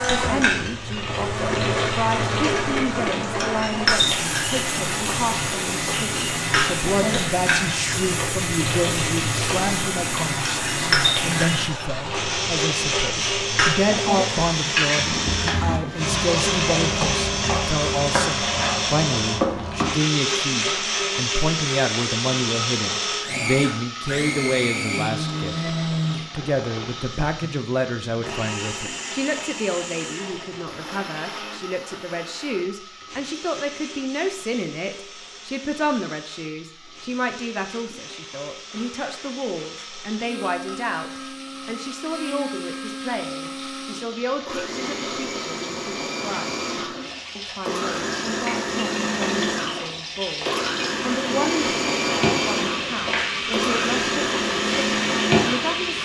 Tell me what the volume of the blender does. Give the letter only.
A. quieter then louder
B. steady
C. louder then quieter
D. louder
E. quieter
A.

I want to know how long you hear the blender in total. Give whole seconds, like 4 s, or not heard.
56 s.